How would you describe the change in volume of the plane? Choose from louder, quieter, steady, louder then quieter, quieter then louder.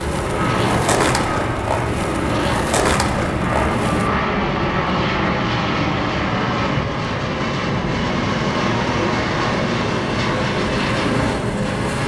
steady.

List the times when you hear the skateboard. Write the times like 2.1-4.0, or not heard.
0.0-4.1.